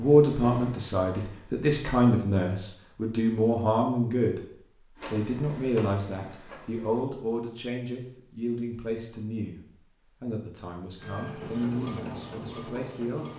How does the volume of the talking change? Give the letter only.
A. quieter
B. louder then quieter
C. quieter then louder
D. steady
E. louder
A.